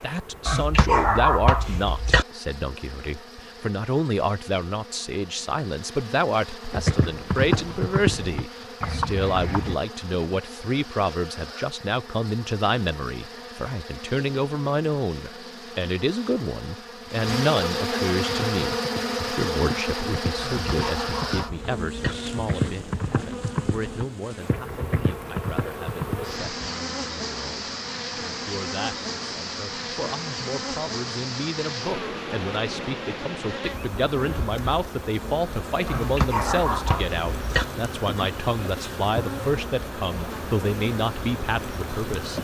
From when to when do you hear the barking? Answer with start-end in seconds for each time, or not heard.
0.5-2.2, 20.4-22.1, 35.9-37.6.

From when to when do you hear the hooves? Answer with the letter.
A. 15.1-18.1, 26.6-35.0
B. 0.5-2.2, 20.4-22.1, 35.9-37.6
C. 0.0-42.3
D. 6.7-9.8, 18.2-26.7
D.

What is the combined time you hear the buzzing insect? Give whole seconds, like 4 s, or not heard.
42 s.